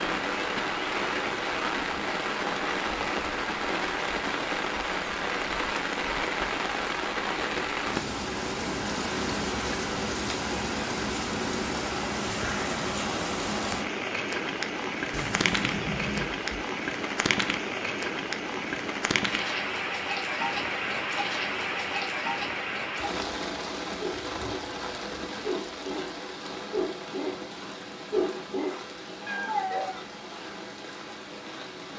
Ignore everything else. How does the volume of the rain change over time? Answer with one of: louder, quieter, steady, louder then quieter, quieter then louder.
quieter.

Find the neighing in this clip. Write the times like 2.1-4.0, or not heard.
15.1-16.4.